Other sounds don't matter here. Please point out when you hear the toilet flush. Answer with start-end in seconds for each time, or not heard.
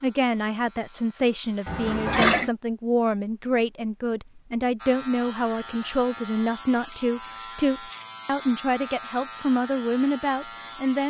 1.6-2.5.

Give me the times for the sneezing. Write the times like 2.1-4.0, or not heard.
not heard.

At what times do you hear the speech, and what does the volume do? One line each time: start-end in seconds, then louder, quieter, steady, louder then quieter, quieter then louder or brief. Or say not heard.
0.0-11.0 steady.